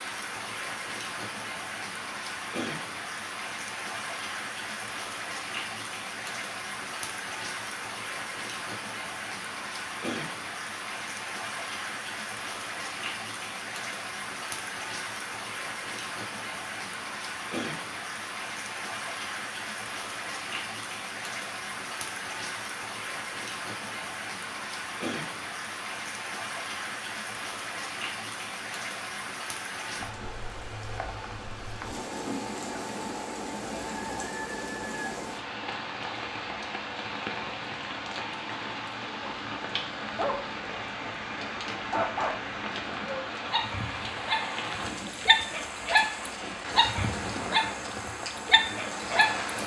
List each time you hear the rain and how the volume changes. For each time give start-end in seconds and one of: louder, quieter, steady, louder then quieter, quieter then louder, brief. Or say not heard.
0.0-49.6 steady.